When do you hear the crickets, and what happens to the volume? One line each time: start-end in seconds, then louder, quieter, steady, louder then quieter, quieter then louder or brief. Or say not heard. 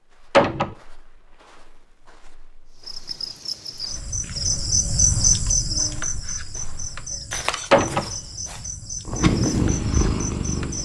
2.8-10.7 louder then quieter.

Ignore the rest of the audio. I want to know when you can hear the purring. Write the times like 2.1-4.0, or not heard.
9.1-10.7.